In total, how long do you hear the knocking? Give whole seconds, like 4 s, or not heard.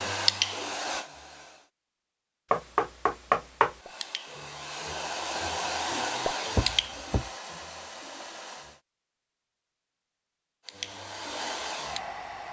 2 s.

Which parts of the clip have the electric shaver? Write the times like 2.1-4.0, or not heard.
not heard.